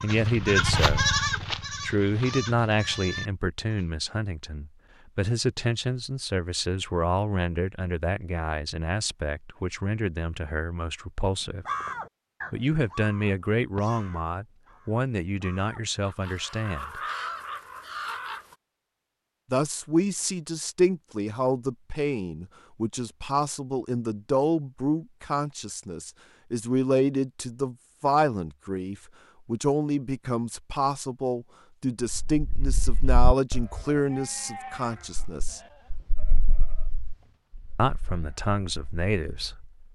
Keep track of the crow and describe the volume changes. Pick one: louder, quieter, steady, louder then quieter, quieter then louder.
quieter then louder.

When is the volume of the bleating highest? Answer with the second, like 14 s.
1 s.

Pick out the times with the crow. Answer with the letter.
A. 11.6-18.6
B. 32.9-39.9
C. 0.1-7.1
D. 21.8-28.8
A.